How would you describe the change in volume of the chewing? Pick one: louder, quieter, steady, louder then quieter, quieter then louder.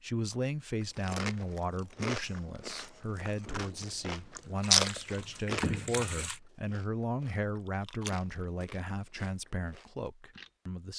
louder then quieter.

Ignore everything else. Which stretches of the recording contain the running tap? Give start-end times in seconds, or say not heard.
3.5-6.4.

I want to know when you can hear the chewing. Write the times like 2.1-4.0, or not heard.
0.9-10.5.